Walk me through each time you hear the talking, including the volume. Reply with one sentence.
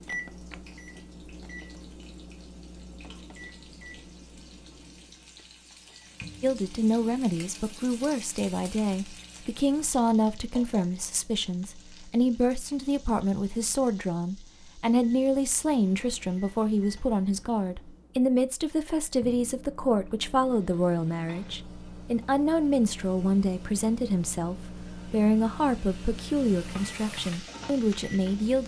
You can hear the talking from 6.4 to 28.6 s, at a steady volume.